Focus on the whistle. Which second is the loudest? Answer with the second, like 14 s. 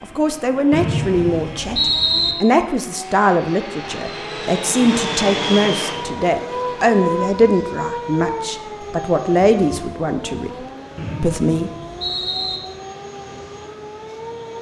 2 s.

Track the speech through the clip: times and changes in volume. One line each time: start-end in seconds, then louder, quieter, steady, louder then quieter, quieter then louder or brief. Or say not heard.
0.0-10.5 steady
11.2-11.7 brief.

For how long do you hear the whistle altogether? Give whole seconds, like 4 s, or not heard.
3 s.